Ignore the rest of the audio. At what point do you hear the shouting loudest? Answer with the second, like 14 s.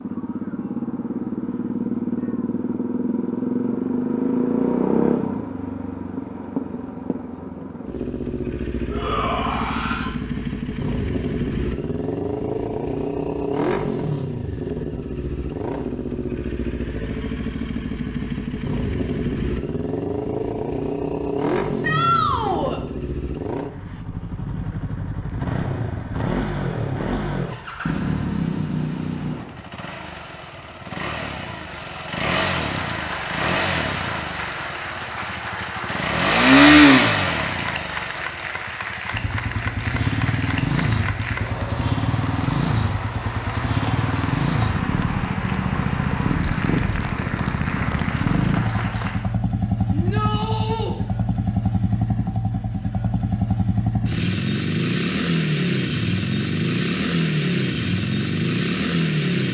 22 s.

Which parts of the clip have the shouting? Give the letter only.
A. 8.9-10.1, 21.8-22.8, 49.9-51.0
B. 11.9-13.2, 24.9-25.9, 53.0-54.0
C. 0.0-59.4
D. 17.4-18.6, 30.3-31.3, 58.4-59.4
A.